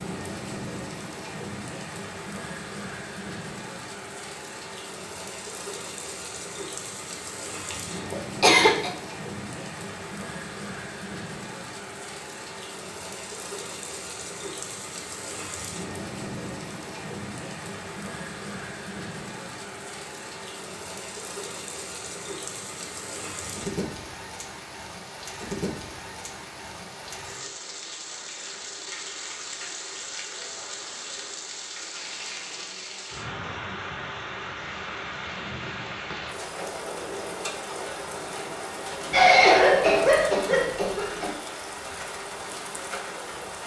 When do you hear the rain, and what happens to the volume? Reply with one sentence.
You can hear the rain from 0.0 to 43.6 s, at a steady volume.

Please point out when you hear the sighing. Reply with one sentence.
You can't hear the sighing here.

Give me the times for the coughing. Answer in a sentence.
The coughing can be heard from 7.7 to 8.9 s and from 39.1 to 41.3 s.